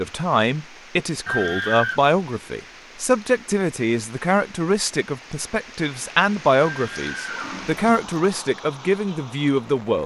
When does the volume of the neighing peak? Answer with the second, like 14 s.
2 s.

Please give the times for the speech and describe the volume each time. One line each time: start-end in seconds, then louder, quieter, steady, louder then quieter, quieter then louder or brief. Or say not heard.
0.0-10.0 steady.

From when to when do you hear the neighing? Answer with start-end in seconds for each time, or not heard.
1.2-2.0, 6.6-8.1.